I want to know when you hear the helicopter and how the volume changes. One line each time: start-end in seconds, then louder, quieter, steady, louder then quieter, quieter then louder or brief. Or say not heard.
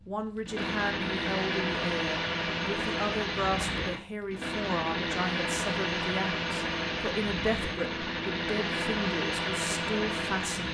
0.0-10.6 steady.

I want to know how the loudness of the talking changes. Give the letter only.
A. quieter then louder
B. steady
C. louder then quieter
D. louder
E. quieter
B.